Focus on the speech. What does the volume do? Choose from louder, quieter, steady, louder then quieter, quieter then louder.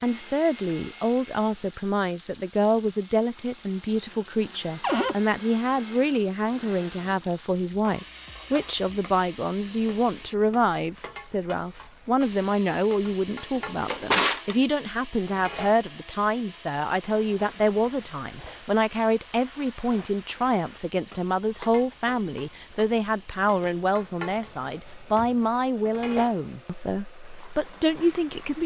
steady.